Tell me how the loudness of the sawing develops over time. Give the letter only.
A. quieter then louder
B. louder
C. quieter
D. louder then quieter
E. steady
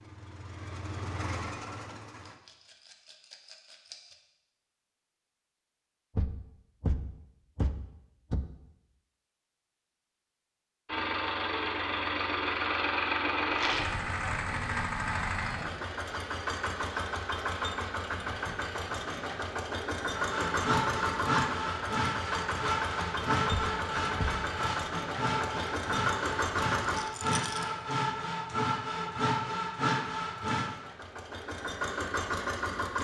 E.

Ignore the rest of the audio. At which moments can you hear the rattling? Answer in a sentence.
You can hear the rattling from 2.2 to 4.2 s, from 13.5 to 14.0 s and from 26.8 to 27.7 s.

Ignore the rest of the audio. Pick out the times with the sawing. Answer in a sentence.
The sawing can be heard from 20.1 to 30.8 s.